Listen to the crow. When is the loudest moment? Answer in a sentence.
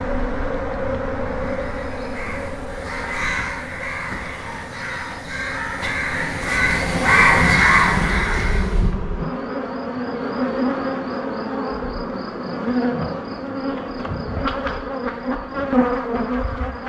The volume of the crow peaks at 7 seconds.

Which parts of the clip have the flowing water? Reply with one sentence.
The flowing water can't be heard in this clip.